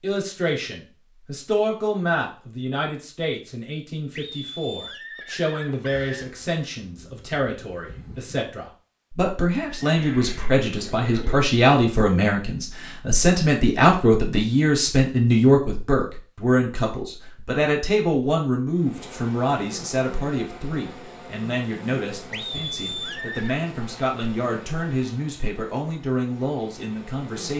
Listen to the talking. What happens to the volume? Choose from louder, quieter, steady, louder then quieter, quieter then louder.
louder then quieter.